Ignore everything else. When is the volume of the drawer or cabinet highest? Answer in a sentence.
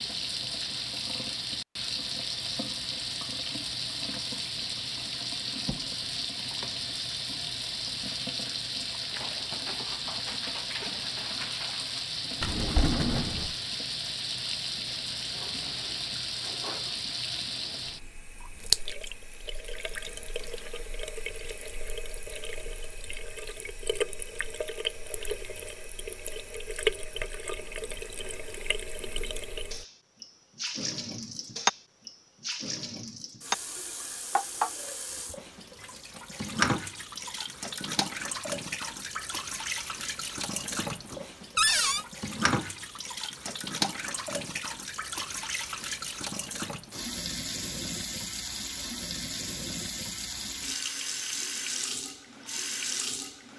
The loudest moment of the drawer or cabinet is at 42 seconds.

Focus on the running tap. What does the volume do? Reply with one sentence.
The loudness of the running tap stays about the same.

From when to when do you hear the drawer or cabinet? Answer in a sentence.
You can hear the drawer or cabinet from 12.4 to 13.6 s and from 41.5 to 42.0 s.